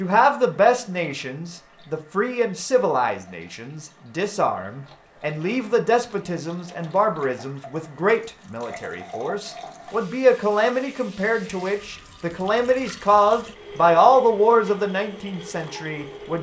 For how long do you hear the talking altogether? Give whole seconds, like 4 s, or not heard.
16 s.